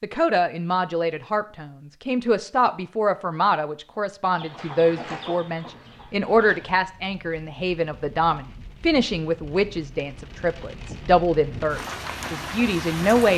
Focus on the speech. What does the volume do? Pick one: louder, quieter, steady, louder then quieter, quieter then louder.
steady.